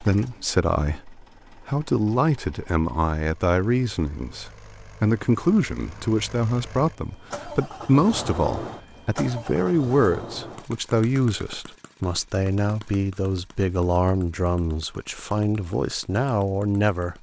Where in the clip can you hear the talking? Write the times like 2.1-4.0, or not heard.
0.0-17.1.